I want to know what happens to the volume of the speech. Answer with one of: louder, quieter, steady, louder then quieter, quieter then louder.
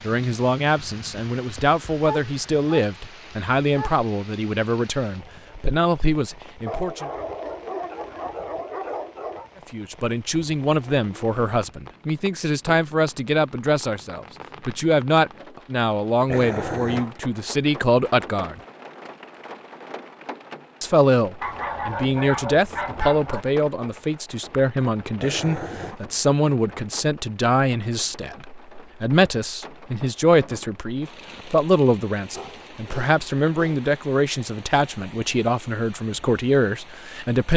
steady.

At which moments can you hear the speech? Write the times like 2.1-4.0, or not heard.
0.0-7.1, 9.7-18.6, 20.8-37.5.